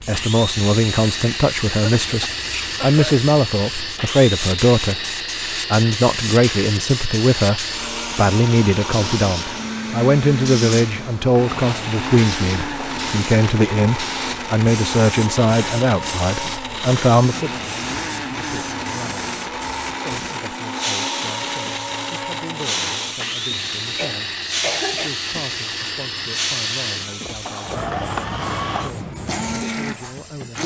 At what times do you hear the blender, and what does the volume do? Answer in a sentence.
You can hear the blender from 0.1 to 30.6 s, at a steady volume.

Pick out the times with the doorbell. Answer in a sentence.
The doorbell can't be heard in this clip.